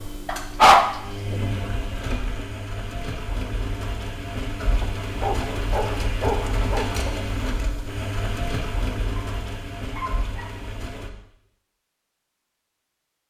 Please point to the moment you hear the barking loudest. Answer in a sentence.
The loudest moment of the barking is at 1 second.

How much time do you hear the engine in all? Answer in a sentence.
The engine can be heard for 11 seconds in total.